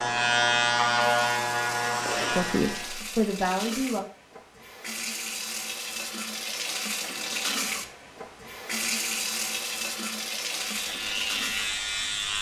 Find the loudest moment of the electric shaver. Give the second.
1 s.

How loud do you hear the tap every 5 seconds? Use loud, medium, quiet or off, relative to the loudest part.
medium, loud, loud.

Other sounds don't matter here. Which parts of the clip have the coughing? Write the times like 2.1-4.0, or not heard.
not heard.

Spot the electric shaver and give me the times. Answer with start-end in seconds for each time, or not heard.
0.0-3.0, 10.7-12.3.